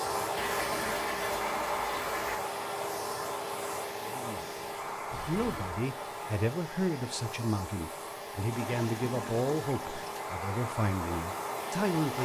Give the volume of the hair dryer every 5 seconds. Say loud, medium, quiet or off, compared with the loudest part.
loud, medium, loud.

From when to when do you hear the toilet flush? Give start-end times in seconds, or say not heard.
0.3-2.4, 5.1-5.8, 8.5-10.3.